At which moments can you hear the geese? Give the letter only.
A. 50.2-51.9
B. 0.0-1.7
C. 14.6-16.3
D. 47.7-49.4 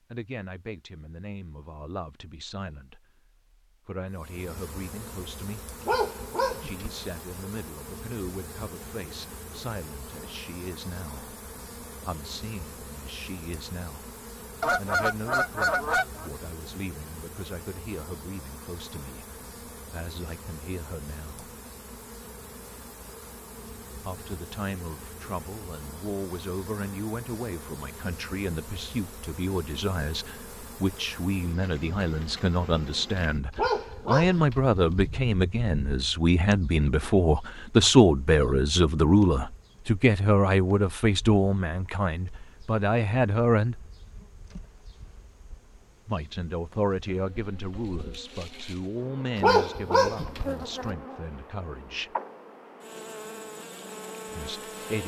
C.